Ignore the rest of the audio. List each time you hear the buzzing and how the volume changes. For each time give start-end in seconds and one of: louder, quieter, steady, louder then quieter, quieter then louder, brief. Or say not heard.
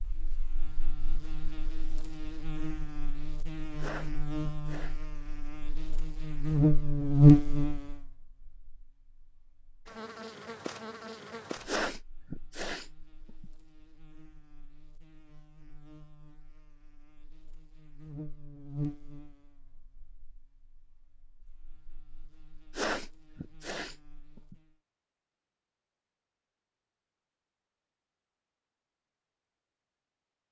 0.0-24.8 louder then quieter.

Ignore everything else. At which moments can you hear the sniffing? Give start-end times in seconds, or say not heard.
3.8-5.0, 11.7-13.4, 22.8-24.6.